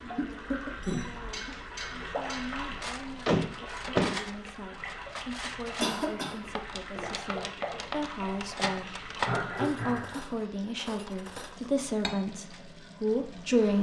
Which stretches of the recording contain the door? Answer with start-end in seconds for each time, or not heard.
3.2-4.2.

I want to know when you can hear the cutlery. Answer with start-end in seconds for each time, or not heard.
0.8-12.6.